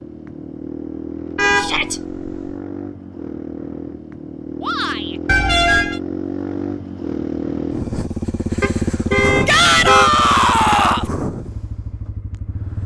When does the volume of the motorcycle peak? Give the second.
9 s.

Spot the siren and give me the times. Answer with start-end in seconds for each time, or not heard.
not heard.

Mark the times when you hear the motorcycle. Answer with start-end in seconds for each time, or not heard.
0.0-12.8.